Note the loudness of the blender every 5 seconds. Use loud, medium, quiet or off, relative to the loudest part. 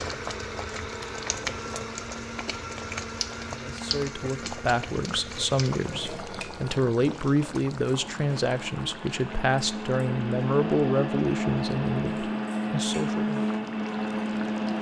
medium, medium, loud.